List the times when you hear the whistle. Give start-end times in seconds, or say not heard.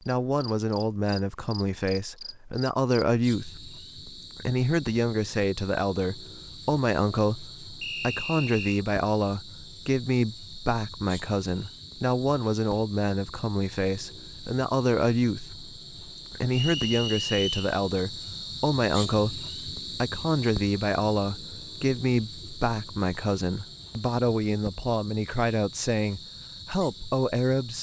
7.8-8.8, 16.5-17.7.